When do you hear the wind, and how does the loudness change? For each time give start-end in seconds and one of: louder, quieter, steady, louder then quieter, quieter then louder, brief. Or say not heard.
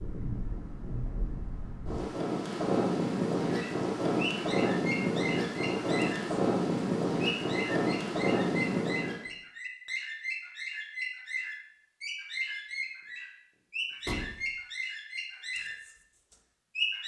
0.0-9.2 louder.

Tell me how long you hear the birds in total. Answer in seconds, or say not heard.
13 s.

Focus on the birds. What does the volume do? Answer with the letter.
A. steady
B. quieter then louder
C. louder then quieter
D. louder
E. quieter
A.